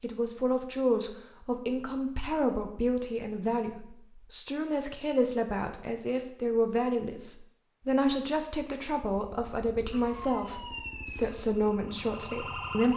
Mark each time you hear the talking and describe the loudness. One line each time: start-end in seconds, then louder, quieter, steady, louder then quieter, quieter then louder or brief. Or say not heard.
0.0-12.9 steady.